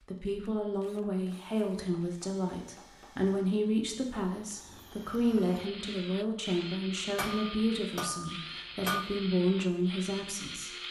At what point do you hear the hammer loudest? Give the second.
9 s.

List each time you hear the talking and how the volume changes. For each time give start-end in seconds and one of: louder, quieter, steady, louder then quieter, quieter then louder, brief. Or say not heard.
0.1-10.7 steady.